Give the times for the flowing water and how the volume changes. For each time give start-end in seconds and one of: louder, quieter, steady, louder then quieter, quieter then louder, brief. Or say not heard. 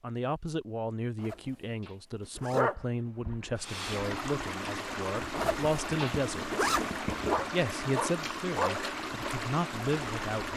3.5-10.5 steady.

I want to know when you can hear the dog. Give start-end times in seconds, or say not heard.
2.5-3.6, 7.2-8.8.